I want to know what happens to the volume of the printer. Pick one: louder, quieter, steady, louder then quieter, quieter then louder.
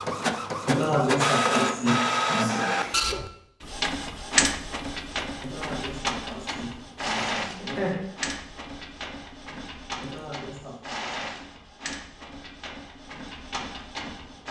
quieter.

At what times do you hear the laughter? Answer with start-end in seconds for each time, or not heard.
0.7-2.8, 5.4-8.1, 10.0-10.9.